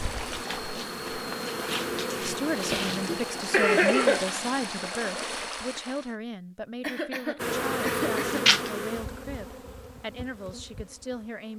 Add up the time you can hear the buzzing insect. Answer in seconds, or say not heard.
8 s.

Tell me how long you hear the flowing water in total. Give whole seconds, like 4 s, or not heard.
6 s.